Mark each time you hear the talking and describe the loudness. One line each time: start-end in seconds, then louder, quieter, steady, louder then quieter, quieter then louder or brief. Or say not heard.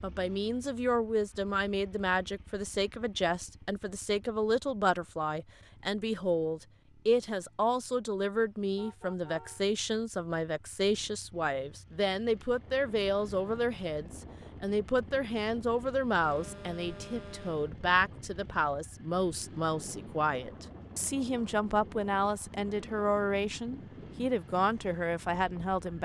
0.0-26.0 steady.